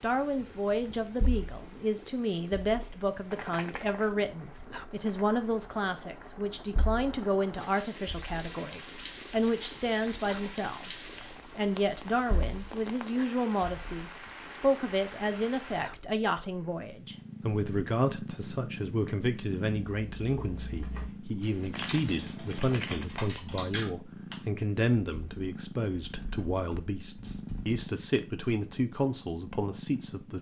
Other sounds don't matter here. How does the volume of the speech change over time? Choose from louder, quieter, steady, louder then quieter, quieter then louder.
steady.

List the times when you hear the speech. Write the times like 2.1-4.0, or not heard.
0.0-30.3.